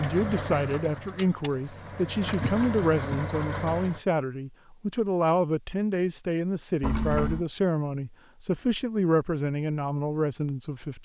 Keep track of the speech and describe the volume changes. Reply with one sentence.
The loudness of the speech stays about the same.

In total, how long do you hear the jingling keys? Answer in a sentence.
You can hear the jingling keys for 3 seconds altogether.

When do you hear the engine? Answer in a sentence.
You can hear the engine from 0.0 to 4.0 s.